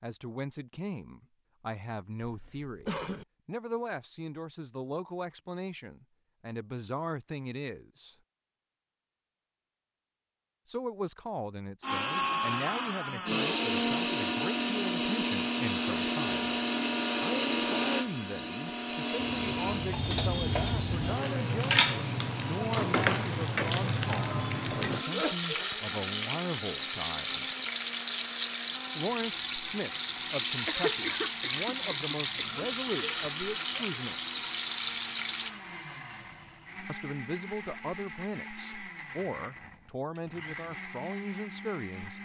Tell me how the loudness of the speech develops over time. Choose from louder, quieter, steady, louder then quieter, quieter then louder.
steady.